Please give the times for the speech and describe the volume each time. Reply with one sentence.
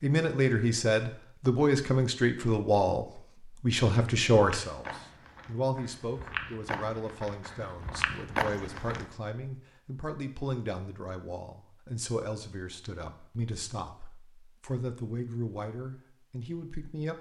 You can hear the speech from 0.0 to 17.1 s, getting quieter.